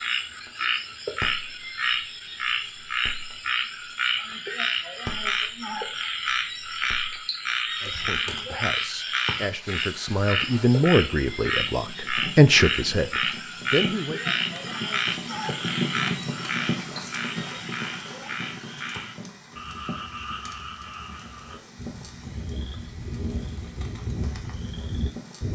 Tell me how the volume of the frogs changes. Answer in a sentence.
The volume of the frogs goes down.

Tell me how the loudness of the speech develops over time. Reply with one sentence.
The loudness of the speech goes up, then down.